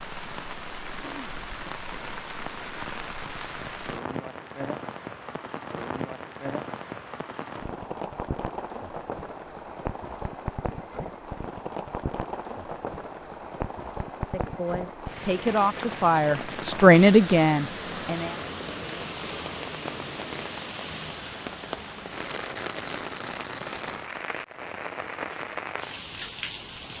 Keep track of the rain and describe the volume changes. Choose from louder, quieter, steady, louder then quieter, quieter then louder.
steady.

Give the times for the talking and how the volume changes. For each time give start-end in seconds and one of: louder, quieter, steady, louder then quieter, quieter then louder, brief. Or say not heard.
14.3-18.4 louder then quieter.